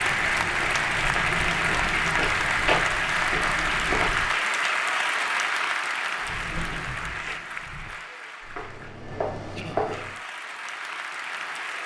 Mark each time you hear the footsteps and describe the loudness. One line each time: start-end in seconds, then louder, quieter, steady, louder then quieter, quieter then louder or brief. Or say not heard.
0.0-4.3 louder then quieter
6.2-10.2 quieter then louder.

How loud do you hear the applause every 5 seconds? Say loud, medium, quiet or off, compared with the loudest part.
loud, medium, medium.